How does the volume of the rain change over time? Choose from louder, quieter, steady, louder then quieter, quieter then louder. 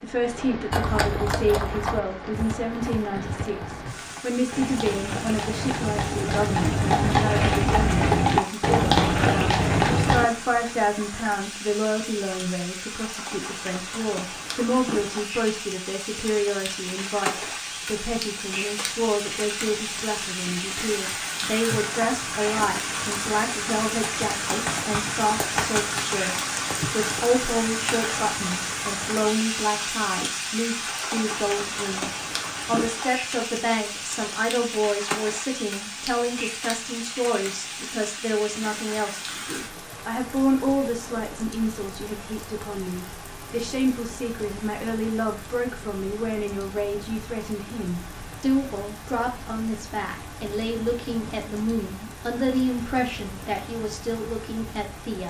louder then quieter.